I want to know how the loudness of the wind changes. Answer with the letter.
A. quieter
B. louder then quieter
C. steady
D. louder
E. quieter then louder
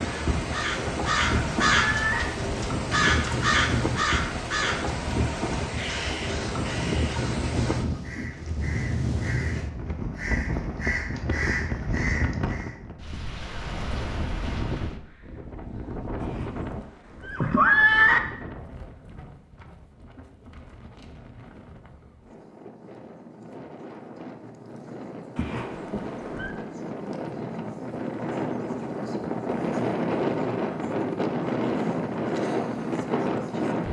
E.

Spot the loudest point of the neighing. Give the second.
18 s.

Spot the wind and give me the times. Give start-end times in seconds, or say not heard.
0.0-33.8.